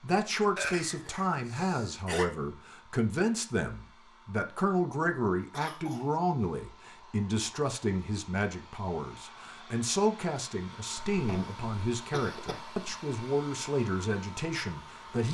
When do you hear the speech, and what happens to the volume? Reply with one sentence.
The speech can be heard from 0.0 to 15.2 s, at a steady volume.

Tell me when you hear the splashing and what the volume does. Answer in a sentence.
The splashing can't be heard in this clip.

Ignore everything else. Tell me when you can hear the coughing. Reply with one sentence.
You can hear the coughing from 0.6 to 2.3 s, from 5.5 to 6.2 s and from 10.9 to 12.8 s.